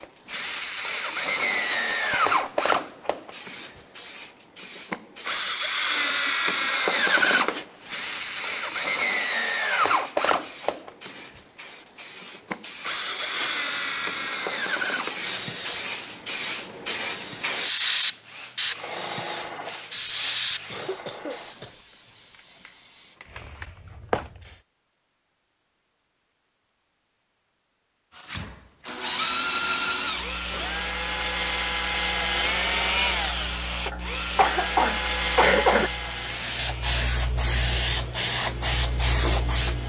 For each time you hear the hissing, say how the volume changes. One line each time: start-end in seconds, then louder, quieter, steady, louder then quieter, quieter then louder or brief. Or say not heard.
0.0-24.6 louder then quieter
33.0-39.8 louder.